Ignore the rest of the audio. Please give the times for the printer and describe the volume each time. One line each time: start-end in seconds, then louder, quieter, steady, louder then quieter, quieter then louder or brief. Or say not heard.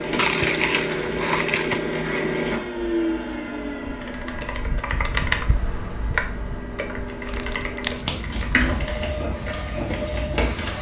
0.0-10.7 quieter then louder.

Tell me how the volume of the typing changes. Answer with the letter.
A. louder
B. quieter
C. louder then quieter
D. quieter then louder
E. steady
C.